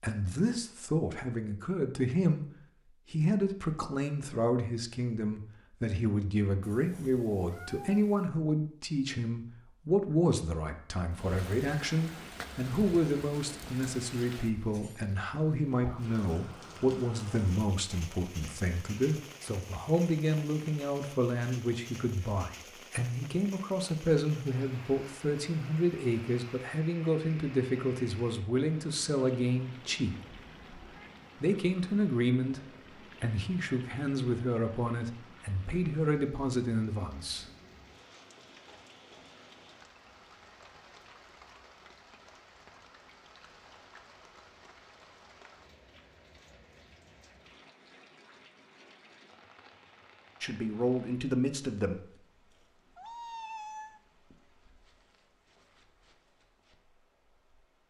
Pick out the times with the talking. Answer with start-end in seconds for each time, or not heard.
0.0-2.5, 3.1-30.1, 31.4-37.5, 50.4-52.0.